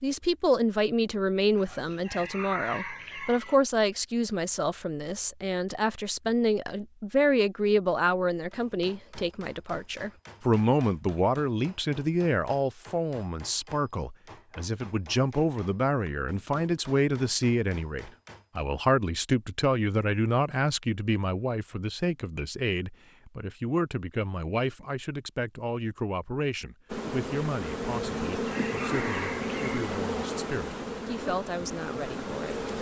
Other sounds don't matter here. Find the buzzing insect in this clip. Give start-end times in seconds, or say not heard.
26.9-32.7.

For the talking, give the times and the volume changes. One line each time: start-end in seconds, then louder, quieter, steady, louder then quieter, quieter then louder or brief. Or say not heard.
0.0-32.7 quieter.